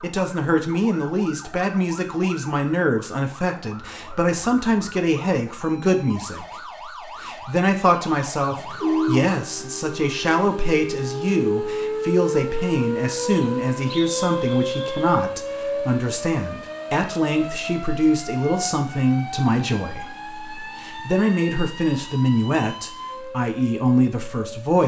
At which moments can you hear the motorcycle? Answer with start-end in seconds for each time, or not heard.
not heard.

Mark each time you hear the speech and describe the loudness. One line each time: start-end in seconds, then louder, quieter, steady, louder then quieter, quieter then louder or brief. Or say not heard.
0.0-24.8 steady.